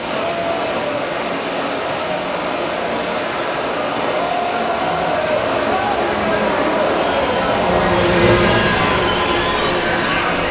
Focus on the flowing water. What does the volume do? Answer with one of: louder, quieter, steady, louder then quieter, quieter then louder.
steady.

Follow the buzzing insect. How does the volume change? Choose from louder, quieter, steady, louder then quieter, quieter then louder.
louder then quieter.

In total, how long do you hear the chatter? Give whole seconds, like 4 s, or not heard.
10 s.